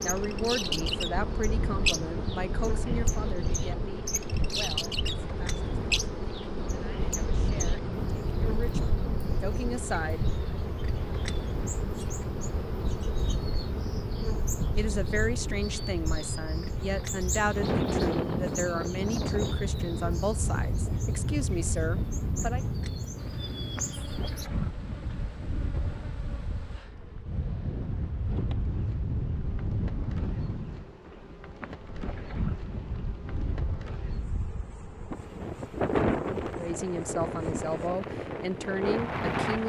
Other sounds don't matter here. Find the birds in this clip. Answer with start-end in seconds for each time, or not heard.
0.0-24.5.